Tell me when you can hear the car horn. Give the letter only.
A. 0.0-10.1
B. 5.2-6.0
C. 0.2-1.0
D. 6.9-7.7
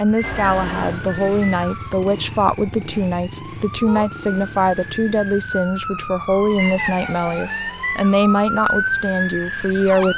C.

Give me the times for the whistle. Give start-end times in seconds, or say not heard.
0.1-1.9, 6.5-8.2.